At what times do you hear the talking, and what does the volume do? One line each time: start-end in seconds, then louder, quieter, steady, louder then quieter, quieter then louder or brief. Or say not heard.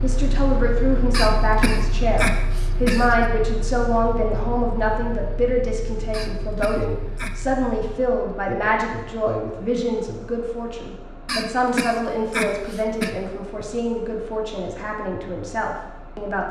0.0-16.4 quieter.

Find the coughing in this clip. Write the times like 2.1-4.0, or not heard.
1.1-3.3, 6.1-7.4, 11.2-13.1.